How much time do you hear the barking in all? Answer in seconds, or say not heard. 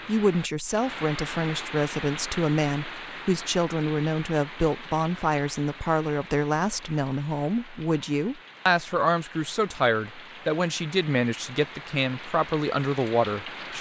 not heard.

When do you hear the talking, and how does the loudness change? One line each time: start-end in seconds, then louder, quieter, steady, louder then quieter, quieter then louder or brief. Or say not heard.
0.1-13.7 steady.